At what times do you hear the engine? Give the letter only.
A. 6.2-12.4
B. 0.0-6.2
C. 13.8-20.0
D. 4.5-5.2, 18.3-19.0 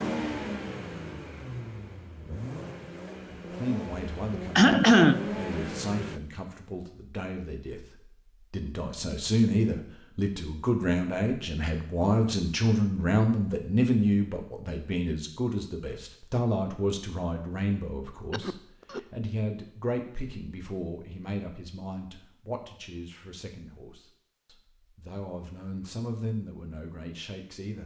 B.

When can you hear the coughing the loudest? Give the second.
5 s.